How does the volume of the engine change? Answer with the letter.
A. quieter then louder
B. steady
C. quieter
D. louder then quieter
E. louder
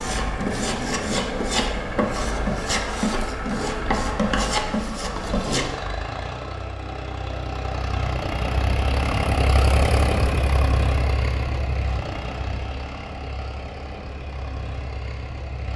D.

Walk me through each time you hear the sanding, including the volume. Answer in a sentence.
You can hear the sanding from 0.0 to 5.8 s, at a steady volume.